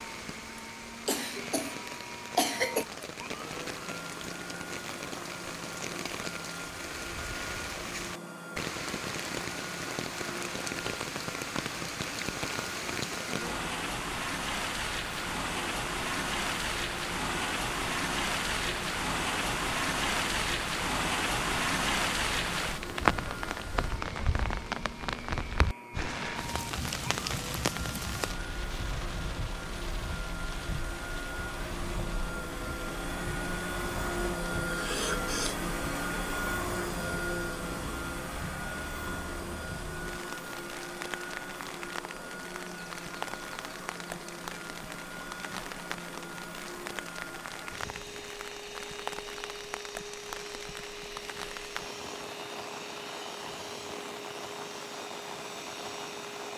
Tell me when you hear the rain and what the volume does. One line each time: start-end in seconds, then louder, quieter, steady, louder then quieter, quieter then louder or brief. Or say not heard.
0.0-56.5 louder then quieter.